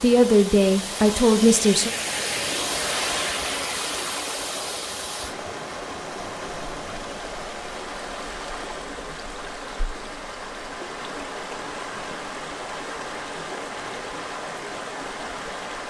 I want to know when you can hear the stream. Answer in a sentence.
The stream can be heard from 0.0 to 15.8 s.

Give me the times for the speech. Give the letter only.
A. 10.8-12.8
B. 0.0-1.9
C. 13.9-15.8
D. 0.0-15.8
B.